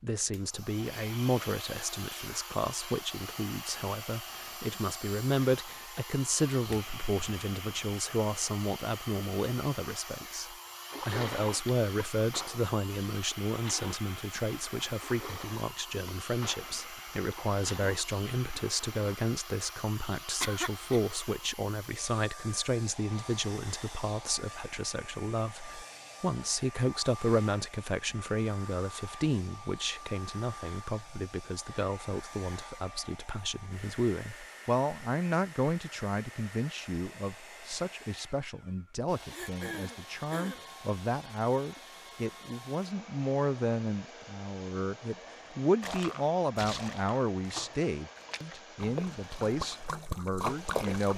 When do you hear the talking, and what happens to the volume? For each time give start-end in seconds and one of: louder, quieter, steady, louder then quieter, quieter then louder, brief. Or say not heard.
0.0-51.1 steady.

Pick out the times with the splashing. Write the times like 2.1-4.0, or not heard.
10.9-19.0, 45.8-51.1.